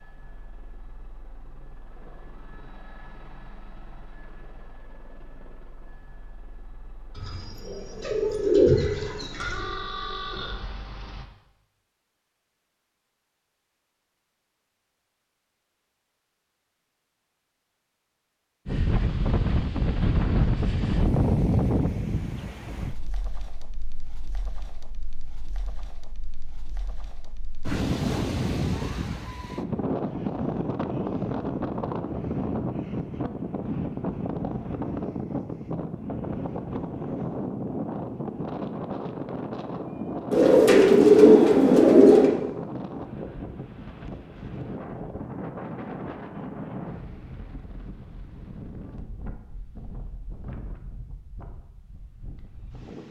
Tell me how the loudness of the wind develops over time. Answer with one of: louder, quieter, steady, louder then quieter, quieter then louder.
quieter.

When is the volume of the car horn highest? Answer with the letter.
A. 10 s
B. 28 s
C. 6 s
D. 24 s
A.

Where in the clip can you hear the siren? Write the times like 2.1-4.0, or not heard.
not heard.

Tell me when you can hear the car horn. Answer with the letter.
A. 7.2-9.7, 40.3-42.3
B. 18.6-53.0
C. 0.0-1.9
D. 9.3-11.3
D.